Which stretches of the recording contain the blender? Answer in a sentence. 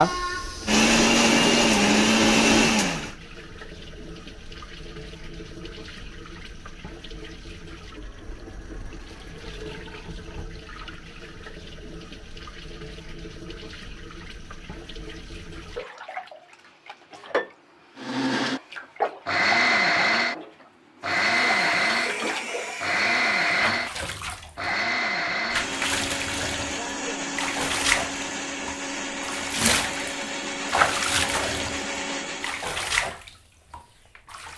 The blender can be heard from 0.0 to 3.1 s and from 17.9 to 32.8 s.